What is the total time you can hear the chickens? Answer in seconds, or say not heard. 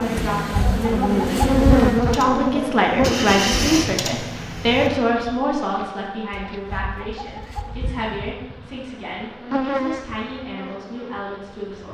4 s.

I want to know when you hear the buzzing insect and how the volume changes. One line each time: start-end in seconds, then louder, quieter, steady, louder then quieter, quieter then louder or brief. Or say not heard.
0.0-11.8 quieter then louder.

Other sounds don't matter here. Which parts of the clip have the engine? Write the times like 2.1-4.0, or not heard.
0.0-4.9.